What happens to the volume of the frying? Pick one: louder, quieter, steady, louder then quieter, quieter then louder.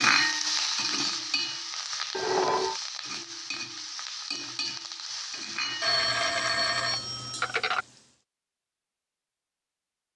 quieter.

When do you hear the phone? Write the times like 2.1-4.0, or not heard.
2.1-2.8, 5.8-7.8.